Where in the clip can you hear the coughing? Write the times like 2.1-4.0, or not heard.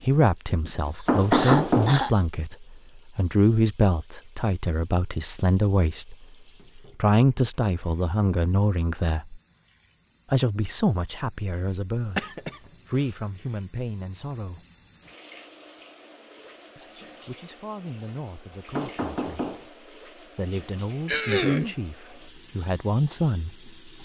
0.6-2.2, 12.0-13.2, 21.1-21.8.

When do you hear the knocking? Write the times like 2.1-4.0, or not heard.
1.1-2.0, 18.8-19.7.